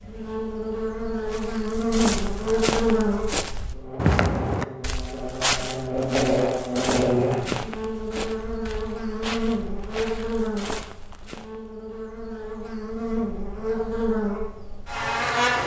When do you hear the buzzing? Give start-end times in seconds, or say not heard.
0.0-15.6.